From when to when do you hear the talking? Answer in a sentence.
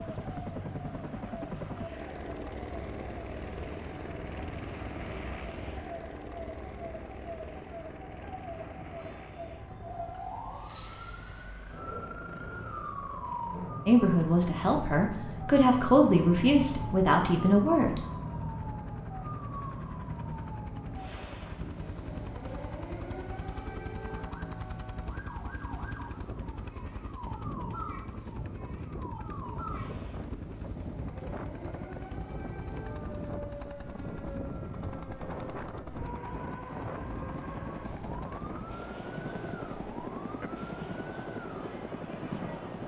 You can hear the talking from 13.8 to 18.0 s.